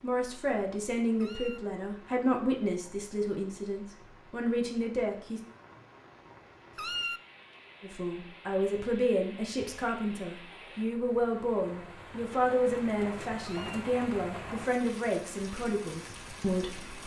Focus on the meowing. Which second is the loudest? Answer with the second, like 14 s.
7 s.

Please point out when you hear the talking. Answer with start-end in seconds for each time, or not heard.
0.0-5.4, 7.8-16.9.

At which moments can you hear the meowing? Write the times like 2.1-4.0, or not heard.
1.1-1.6, 6.8-7.2, 13.4-13.8.